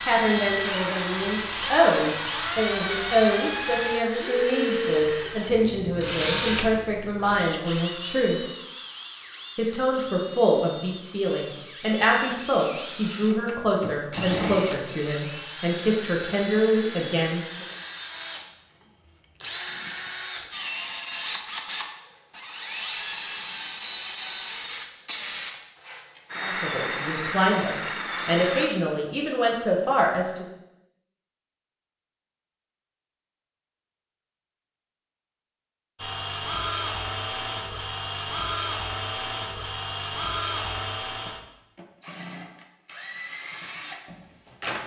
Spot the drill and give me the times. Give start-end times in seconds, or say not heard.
0.0-18.4, 19.4-28.6, 36.0-44.8.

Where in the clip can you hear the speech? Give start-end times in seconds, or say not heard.
0.1-8.4, 9.6-17.6, 26.4-30.4.